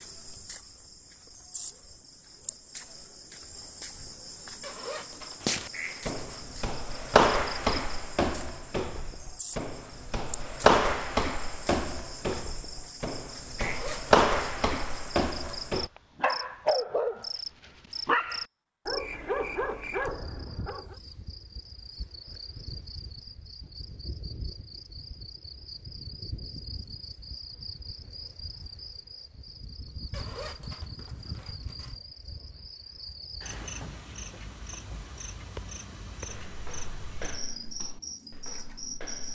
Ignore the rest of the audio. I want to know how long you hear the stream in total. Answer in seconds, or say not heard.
not heard.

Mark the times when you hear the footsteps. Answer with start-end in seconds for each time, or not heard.
5.4-15.9, 36.2-39.3.